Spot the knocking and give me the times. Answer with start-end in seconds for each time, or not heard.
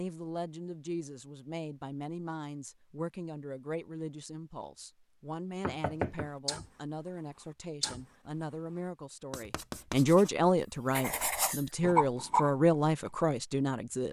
5.6-6.3.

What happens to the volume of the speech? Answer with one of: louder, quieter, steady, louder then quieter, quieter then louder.
louder.